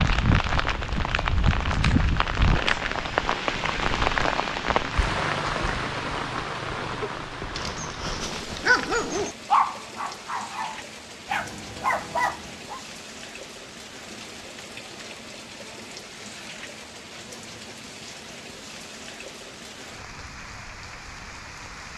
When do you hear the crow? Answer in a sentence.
You can't hear the crow here.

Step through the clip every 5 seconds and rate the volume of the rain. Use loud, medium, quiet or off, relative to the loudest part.
loud, medium, quiet, quiet, quiet.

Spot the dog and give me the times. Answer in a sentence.
You can hear the dog from 6.8 to 12.8 s.